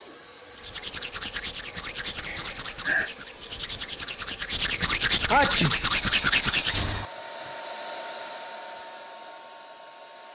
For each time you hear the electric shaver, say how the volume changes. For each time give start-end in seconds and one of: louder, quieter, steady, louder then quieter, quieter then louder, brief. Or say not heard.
not heard.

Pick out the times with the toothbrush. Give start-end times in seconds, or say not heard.
0.6-7.0.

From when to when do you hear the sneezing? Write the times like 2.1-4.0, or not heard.
2.1-3.1, 5.3-5.8.